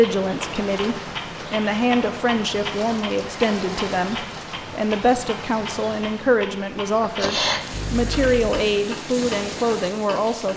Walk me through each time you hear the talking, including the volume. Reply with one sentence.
The talking can be heard from 0.0 to 10.5 s, at a steady volume.